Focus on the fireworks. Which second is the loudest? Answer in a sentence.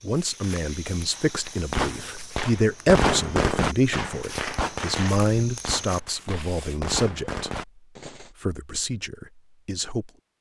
The loudest moment of the fireworks is at 3 seconds.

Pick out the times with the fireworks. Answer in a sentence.
You can hear the fireworks from 1.1 to 8.3 s.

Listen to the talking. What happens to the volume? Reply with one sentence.
The loudness of the talking goes up, then down.